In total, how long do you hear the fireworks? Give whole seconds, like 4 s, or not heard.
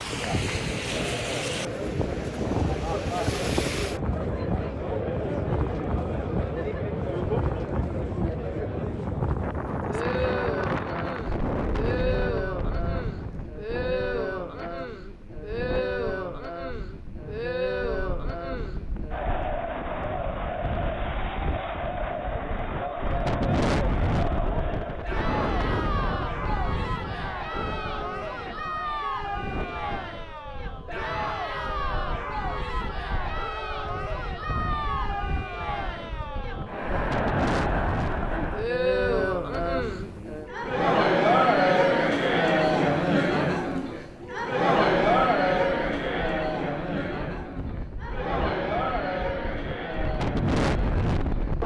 not heard.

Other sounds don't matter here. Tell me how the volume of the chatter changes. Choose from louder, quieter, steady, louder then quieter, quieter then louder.
louder.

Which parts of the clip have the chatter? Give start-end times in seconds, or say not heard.
0.0-51.6.